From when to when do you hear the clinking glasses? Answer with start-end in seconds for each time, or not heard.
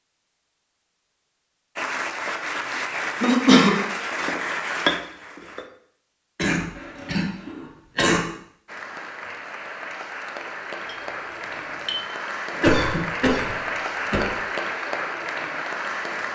4.2-5.7, 10.8-12.0.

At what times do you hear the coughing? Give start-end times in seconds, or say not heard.
3.2-3.8, 6.3-8.2, 12.5-14.3.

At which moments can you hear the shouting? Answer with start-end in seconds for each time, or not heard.
not heard.